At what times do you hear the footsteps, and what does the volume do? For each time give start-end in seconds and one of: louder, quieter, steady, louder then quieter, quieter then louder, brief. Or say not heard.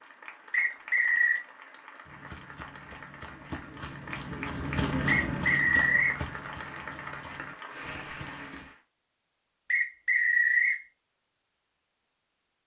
2.0-8.7 louder then quieter.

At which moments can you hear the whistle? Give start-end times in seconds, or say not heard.
0.5-1.4, 5.0-6.2, 9.7-10.8.